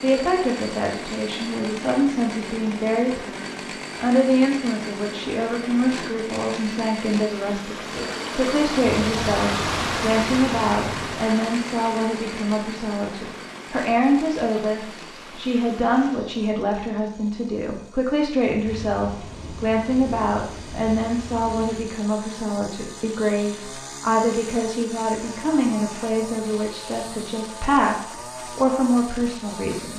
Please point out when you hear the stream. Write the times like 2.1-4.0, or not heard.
0.2-16.2.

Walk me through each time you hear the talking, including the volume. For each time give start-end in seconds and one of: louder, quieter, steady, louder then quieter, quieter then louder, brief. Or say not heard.
0.0-29.9 steady.